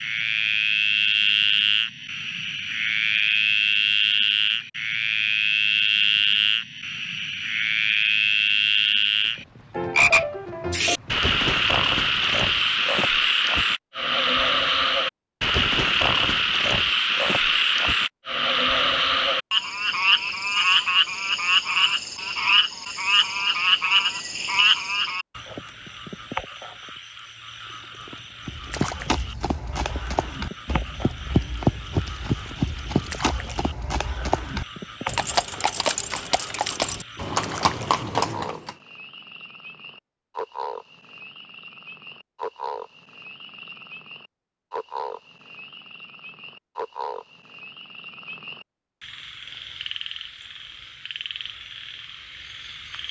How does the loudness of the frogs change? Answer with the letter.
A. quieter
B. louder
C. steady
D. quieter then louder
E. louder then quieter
A.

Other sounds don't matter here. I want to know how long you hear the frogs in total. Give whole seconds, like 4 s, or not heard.
53 s.